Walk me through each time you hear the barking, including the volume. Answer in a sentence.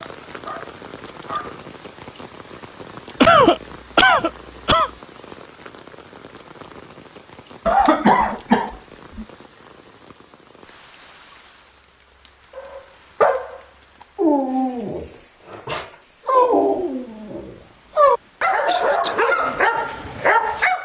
You can hear the barking briefly from 0.0 to 1.6 s; and from 12.6 to 20.8 s, getting quieter then louder.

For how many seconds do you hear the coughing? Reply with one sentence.
You can hear the coughing for 4 seconds altogether.